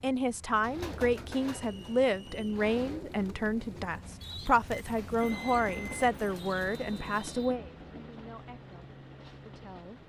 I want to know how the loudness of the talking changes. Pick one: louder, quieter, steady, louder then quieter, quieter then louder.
quieter.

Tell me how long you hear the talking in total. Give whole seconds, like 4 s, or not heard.
10 s.